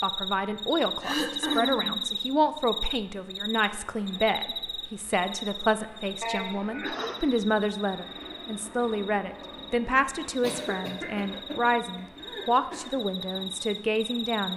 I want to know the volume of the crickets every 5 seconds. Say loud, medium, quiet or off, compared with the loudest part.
loud, medium, medium.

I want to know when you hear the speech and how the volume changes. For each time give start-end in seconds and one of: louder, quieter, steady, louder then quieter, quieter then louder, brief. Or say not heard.
0.0-14.5 steady.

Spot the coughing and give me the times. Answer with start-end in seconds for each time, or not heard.
1.0-1.9, 6.2-7.2, 10.4-12.9.